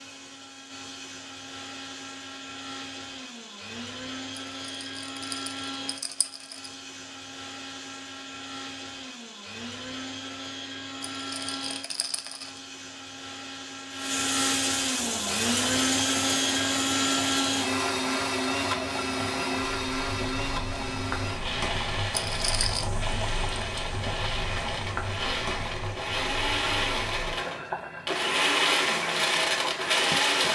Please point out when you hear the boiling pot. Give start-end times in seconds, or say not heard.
14.9-30.4.